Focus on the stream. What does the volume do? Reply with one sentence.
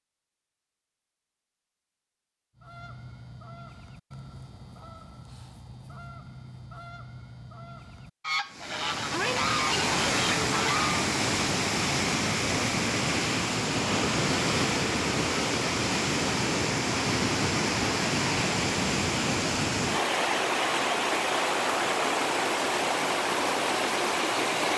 The loudness of the stream stays about the same.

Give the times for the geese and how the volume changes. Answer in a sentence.
You can hear the geese from 2.5 to 11.1 s, getting louder.